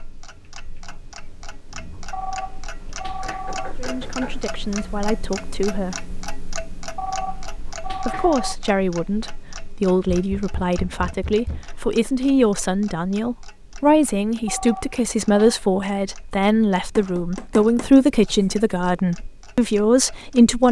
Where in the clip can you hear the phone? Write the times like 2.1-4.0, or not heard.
2.1-3.8, 7.0-8.6, 14.4-15.6.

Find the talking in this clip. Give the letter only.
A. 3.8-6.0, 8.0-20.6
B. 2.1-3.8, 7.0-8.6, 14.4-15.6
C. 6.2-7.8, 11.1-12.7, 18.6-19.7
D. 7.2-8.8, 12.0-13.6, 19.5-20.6
A.